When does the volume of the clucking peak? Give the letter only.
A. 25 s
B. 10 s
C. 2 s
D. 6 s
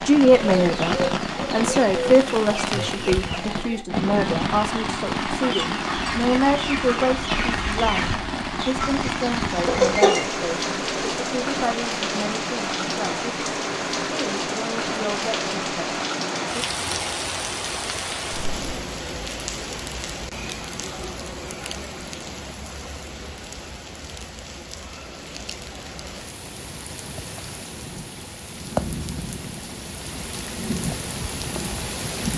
B.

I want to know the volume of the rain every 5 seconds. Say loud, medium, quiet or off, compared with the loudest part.
loud, loud, loud, loud, medium, medium, loud.